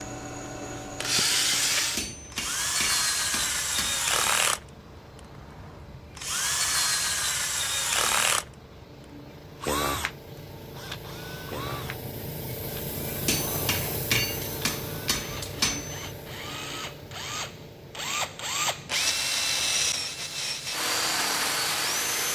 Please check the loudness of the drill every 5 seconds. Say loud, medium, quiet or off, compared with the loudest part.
loud, loud, quiet, loud, loud.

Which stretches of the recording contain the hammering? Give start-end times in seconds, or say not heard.
1.9-4.1, 13.2-16.1.